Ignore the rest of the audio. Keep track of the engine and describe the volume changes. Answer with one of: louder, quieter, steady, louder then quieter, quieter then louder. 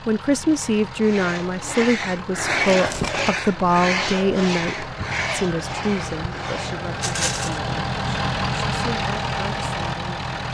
louder.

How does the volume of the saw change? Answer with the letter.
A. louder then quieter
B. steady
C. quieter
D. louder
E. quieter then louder
A.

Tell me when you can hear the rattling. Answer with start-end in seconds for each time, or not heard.
2.4-3.4, 7.0-7.6.